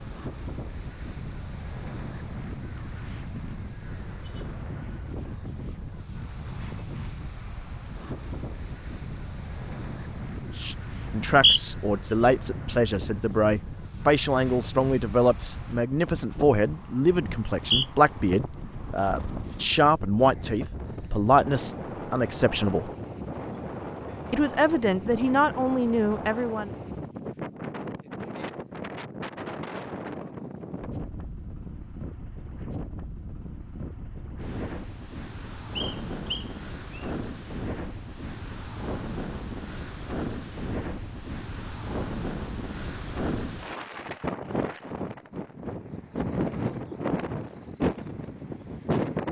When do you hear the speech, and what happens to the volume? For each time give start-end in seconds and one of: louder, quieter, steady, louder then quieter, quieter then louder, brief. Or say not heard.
10.6-22.9 steady
24.3-26.7 brief.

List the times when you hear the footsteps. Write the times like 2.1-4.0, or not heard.
not heard.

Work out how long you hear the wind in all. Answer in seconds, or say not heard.
49 s.